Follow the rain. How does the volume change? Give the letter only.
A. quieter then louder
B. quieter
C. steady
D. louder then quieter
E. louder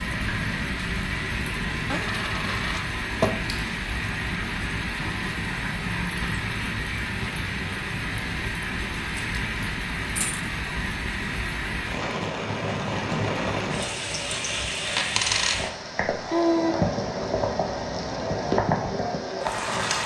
C.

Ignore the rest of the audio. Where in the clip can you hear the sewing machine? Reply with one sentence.
The sewing machine can't be heard in this clip.